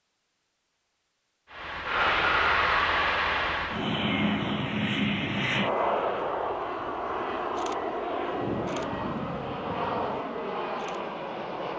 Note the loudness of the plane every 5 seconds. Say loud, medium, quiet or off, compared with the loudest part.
loud, loud, medium.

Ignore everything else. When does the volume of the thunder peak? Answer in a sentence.
The loudest moment of the thunder is at 9 seconds.